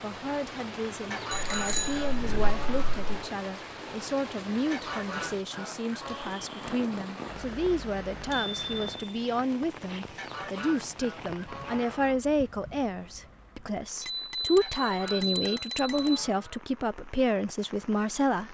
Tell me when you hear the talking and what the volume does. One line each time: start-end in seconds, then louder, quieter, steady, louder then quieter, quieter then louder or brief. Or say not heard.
0.0-18.5 louder.